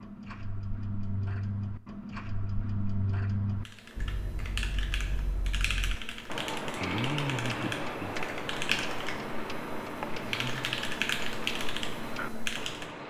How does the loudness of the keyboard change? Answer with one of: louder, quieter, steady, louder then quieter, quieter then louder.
louder.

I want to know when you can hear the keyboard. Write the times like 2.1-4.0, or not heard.
3.5-12.9.